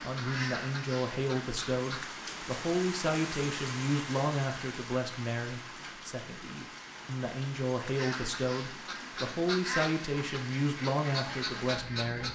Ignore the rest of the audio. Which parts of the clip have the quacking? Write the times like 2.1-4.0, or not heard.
0.0-2.0, 8.0-12.3.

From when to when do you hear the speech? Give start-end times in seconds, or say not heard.
0.0-12.3.